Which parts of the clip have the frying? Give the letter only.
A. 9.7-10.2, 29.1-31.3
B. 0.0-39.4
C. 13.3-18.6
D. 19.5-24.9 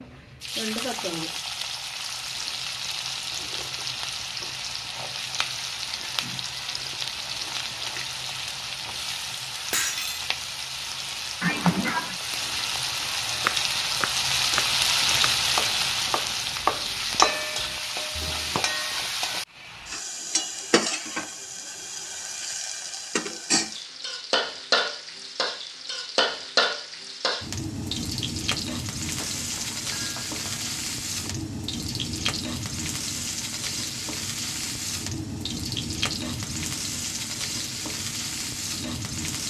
B.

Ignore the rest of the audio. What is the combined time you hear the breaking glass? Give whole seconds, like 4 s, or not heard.
3 s.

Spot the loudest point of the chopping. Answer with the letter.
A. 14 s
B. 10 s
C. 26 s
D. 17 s
D.